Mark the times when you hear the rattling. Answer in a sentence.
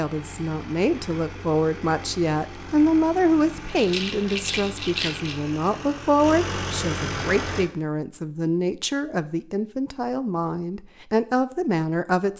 The rattling can be heard from 3.8 to 5.4 s.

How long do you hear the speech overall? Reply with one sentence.
You can hear the speech for 12 seconds altogether.